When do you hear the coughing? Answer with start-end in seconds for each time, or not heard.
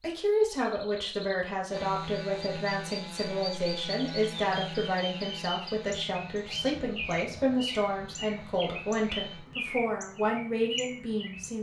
not heard.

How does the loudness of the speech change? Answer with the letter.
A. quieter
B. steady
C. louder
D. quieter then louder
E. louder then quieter
B.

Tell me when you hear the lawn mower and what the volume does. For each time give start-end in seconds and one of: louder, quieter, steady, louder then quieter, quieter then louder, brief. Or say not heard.
not heard.